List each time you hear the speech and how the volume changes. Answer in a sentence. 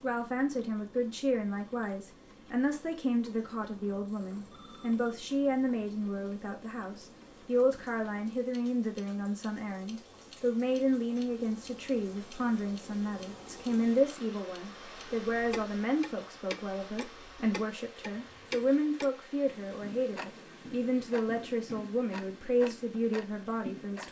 You can hear the speech from 0.0 to 24.0 s, at a steady volume.